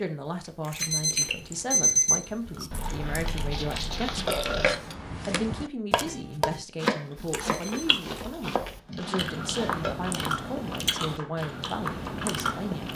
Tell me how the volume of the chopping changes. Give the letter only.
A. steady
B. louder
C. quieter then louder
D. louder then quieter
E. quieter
E.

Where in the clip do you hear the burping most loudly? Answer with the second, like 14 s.
4 s.